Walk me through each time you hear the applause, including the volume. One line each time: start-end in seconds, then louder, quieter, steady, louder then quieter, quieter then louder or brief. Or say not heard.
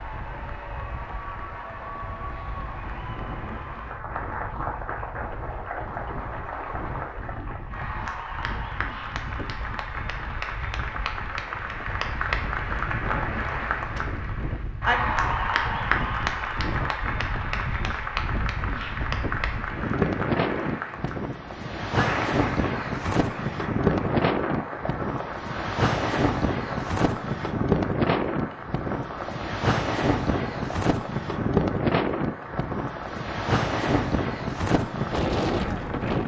0.0-36.2 louder then quieter.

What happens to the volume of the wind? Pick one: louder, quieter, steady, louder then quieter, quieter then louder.
louder.